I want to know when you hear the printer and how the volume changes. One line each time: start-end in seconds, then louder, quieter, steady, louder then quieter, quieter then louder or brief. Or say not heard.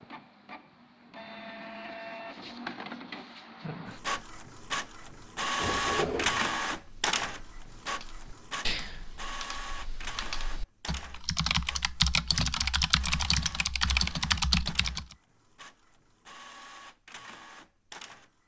0.0-18.4 louder then quieter.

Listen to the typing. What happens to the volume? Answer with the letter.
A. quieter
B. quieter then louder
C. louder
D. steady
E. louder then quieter
C.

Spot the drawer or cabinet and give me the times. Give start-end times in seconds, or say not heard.
5.5-6.5.